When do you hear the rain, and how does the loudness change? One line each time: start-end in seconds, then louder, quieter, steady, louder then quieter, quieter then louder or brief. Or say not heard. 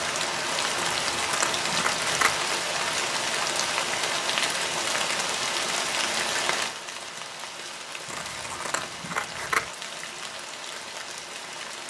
0.0-11.8 quieter.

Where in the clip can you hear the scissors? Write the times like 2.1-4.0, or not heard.
0.8-2.4, 8.1-9.7.